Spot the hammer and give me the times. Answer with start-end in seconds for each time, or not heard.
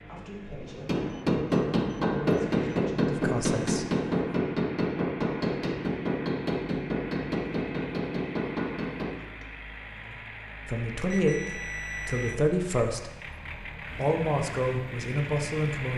0.6-9.4.